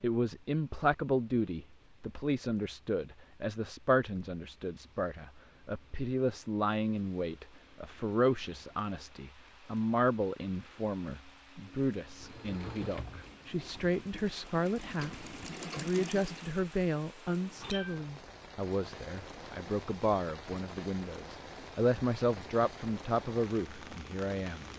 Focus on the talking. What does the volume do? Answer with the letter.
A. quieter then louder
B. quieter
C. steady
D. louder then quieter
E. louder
C.